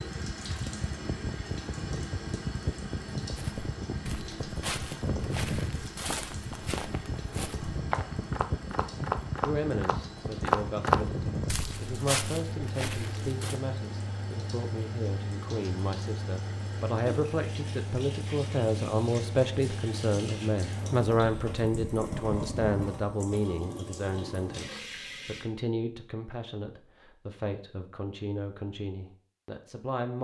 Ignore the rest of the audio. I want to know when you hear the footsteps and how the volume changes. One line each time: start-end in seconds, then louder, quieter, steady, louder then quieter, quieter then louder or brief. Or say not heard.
3.4-13.6 louder then quieter.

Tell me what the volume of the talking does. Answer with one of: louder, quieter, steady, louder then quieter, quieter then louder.
louder then quieter.